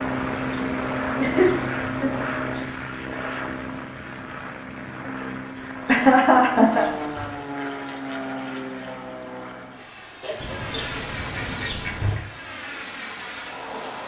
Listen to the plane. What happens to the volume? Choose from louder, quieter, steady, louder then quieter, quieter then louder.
quieter.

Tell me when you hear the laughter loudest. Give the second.
6 s.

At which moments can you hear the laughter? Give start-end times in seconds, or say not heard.
1.1-2.3, 5.8-6.8, 10.2-11.0.